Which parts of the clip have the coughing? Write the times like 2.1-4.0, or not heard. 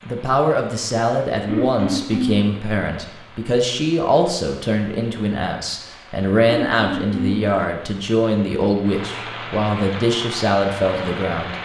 1.4-2.5, 6.5-7.5.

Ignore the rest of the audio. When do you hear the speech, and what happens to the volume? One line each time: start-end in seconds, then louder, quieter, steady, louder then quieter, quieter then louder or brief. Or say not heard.
0.1-11.5 steady.